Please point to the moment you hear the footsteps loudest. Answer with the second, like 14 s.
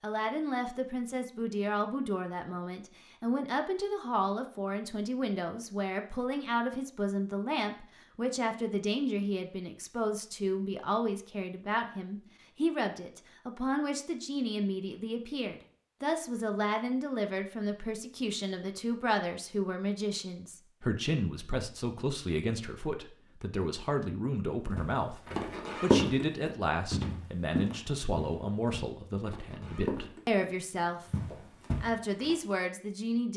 26 s.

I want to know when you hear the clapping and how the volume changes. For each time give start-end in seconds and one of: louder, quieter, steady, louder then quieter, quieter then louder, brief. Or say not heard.
not heard.